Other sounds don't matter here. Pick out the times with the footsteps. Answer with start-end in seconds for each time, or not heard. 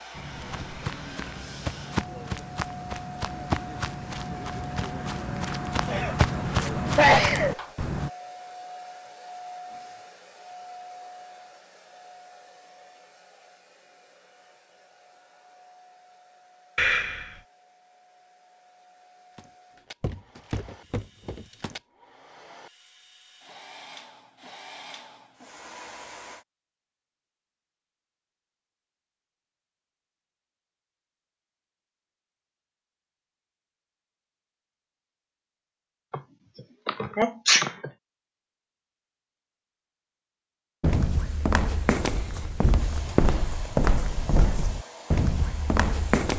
0.1-8.1, 19.4-21.8, 40.8-46.3.